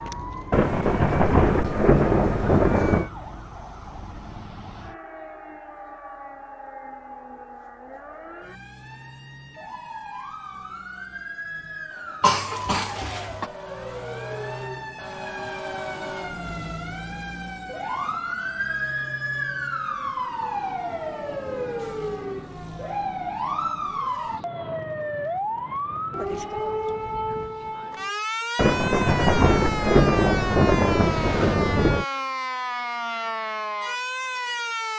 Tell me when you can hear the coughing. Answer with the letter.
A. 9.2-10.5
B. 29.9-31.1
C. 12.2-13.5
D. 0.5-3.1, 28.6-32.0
C.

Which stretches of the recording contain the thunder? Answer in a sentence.
The thunder can be heard from 0.5 to 3.1 s and from 28.6 to 32.0 s.